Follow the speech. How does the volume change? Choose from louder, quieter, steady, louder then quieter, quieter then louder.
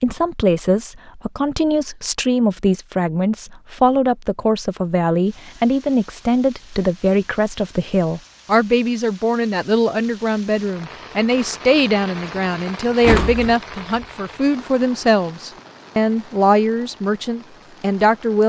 steady.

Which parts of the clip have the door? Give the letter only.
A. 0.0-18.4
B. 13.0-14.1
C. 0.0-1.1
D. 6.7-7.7
B.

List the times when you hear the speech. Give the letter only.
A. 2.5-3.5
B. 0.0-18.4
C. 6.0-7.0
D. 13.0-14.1
B.